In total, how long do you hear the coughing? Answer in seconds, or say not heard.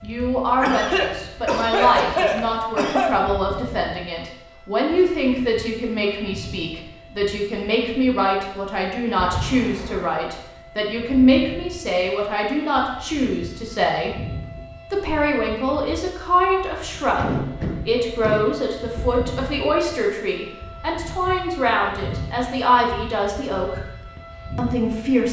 5 s.